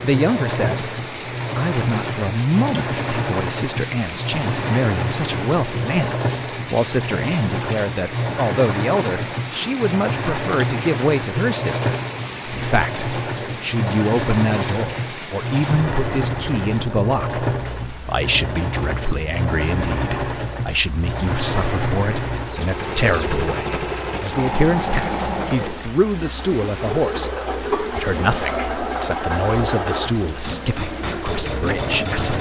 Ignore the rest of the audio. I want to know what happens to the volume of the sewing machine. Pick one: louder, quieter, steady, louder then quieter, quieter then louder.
steady.